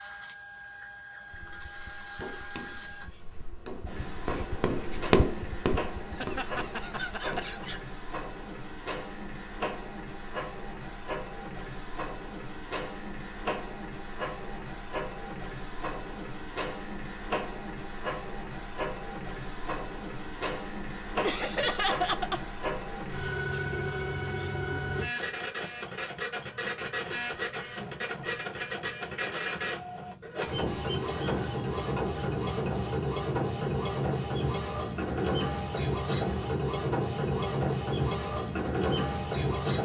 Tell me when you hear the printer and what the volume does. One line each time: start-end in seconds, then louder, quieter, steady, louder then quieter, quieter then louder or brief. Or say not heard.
0.0-39.7 louder.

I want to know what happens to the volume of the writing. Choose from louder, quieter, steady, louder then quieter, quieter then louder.
louder then quieter.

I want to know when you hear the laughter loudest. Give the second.
22 s.